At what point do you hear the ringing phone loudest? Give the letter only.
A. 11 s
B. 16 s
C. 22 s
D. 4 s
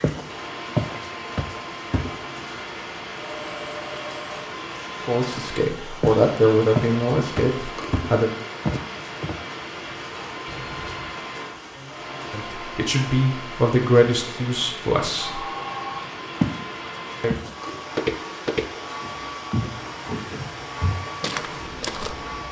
B.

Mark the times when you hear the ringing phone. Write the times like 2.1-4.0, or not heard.
3.3-4.5, 10.4-11.2, 15.2-16.1.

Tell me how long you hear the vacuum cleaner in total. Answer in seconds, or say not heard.
22 s.